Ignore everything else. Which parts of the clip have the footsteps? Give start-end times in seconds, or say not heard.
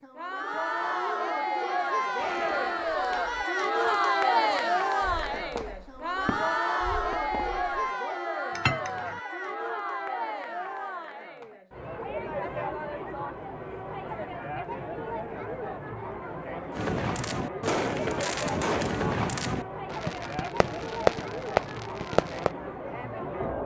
not heard.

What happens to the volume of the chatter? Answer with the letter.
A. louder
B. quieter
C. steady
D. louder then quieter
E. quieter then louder
B.